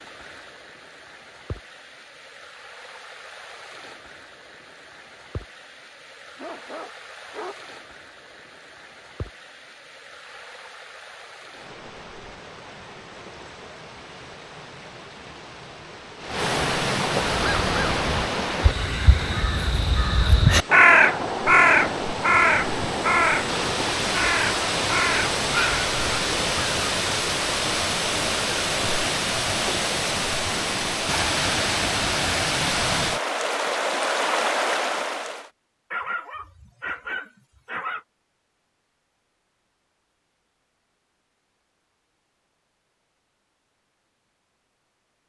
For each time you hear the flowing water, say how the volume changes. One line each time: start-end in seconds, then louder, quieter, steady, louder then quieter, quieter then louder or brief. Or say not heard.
0.0-35.5 louder.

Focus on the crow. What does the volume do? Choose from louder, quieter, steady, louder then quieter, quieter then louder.
louder then quieter.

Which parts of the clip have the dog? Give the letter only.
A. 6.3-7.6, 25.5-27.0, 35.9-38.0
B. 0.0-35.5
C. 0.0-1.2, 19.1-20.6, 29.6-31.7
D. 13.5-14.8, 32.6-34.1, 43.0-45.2
A.